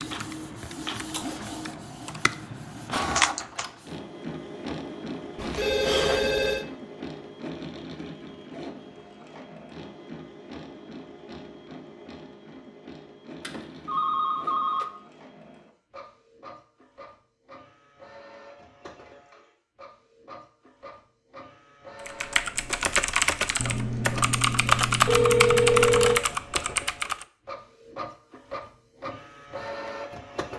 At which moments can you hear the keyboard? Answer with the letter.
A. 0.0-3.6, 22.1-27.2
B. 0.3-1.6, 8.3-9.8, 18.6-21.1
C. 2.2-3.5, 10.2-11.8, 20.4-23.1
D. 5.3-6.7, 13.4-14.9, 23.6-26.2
A.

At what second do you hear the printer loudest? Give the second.
3 s.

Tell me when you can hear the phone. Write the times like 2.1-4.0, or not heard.
5.3-6.7, 13.4-14.9, 23.6-26.2.